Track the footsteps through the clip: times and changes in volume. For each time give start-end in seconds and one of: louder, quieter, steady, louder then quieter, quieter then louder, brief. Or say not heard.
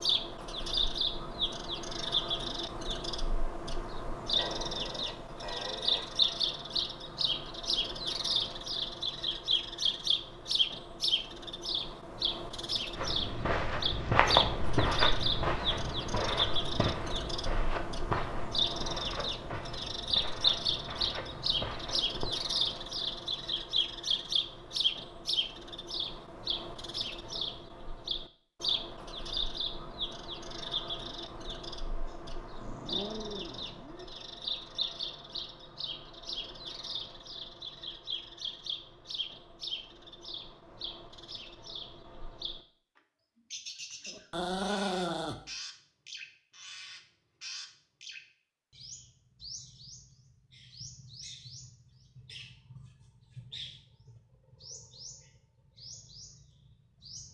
12.9-22.5 quieter.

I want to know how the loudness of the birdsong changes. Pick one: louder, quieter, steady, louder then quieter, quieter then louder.
quieter.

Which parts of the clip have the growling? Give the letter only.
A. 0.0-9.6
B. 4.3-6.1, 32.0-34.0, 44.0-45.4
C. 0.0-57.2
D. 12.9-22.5
B.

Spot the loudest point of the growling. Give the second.
45 s.